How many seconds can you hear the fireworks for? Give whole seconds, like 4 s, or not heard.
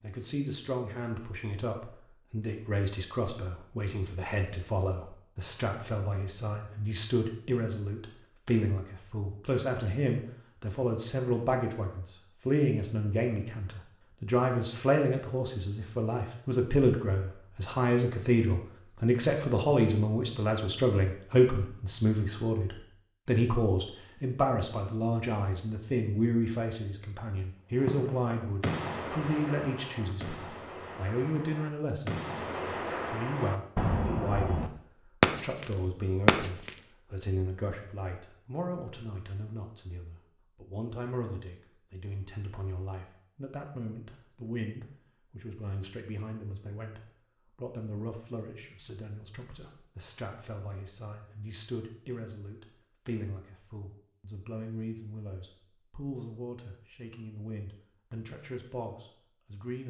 9 s.